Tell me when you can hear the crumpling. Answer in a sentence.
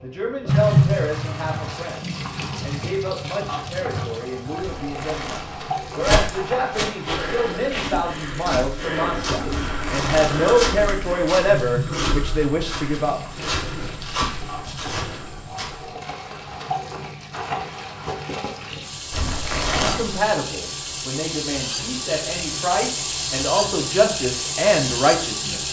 You can hear the crumpling from 4.6 to 6.9 s, from 9.4 to 10.9 s and from 19.1 to 20.2 s.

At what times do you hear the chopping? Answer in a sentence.
You can't hear the chopping here.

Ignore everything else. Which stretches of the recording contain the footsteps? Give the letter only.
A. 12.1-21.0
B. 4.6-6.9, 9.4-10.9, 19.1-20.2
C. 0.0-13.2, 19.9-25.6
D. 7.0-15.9
D.